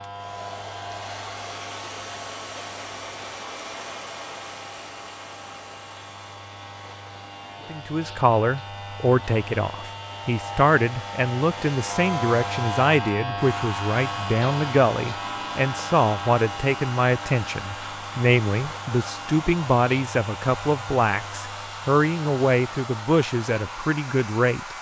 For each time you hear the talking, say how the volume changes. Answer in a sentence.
The talking can be heard from 7.7 to 24.7 s, at a steady volume.